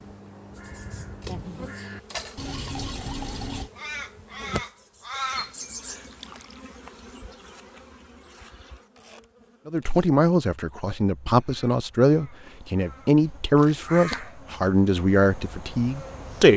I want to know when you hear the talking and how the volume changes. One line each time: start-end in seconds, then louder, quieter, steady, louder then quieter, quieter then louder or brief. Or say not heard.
9.7-16.5 steady.